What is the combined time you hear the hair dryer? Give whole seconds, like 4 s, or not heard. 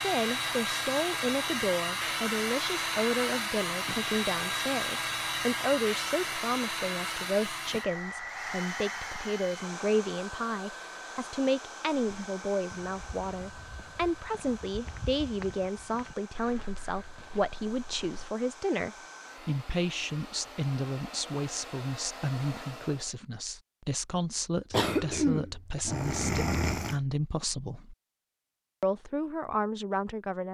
23 s.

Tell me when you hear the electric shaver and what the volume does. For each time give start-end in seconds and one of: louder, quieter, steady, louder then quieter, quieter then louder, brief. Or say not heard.
not heard.